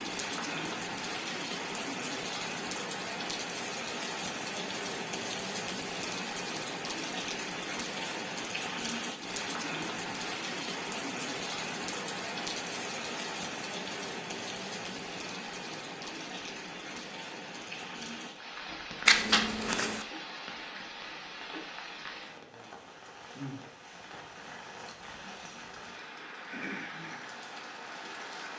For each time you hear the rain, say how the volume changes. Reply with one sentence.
The rain can be heard from 0.0 to 28.5 s, getting quieter.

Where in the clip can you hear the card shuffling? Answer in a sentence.
The card shuffling can be heard from 19.1 to 20.1 s.